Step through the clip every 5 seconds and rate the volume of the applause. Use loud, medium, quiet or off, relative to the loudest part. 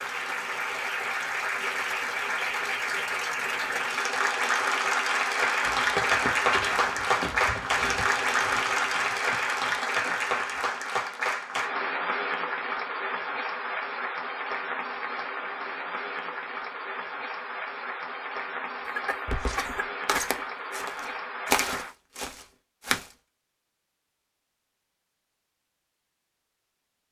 loud, loud, medium, medium, medium, off.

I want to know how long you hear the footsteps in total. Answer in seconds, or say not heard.
9 s.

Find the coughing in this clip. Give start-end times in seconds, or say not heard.
18.9-20.4.